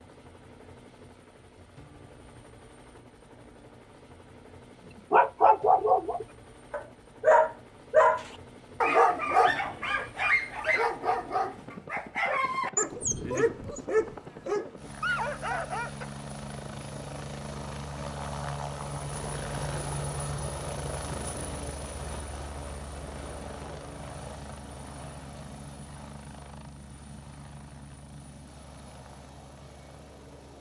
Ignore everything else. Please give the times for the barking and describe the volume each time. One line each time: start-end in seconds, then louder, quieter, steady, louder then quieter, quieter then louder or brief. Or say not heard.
5.1-16.1 quieter.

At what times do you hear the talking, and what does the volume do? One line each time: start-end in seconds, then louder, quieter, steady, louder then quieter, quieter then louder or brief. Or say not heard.
not heard.